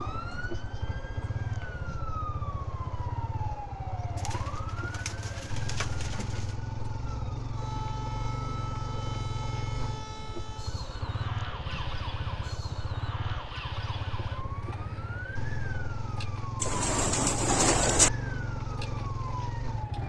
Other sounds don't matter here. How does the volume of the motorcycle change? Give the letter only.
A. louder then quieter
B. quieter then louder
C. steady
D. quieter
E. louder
C.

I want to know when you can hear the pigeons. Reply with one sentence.
You can hear the pigeons from 4.2 to 6.5 s and from 16.6 to 18.1 s.